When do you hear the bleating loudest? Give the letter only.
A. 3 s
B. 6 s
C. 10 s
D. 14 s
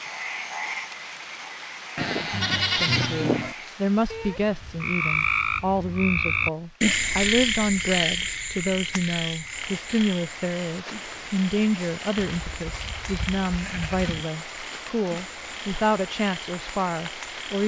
A.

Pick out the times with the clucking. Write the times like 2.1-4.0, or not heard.
not heard.